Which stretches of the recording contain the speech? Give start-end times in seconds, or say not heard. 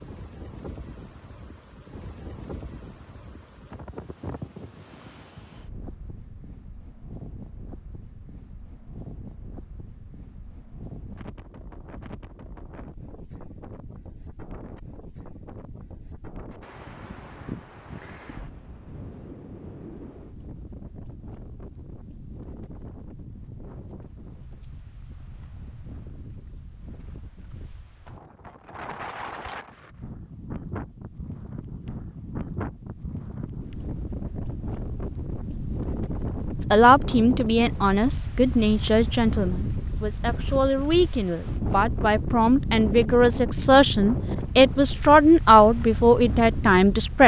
36.6-47.2.